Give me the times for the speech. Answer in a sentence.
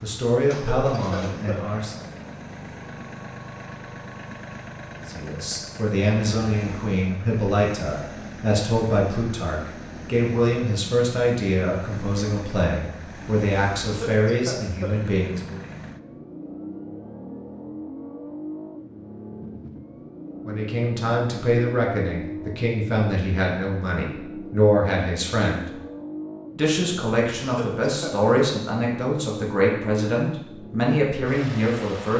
The speech can be heard from 0.0 to 2.0 s, from 5.0 to 15.6 s, from 20.4 to 25.7 s and from 26.6 to 32.1 s.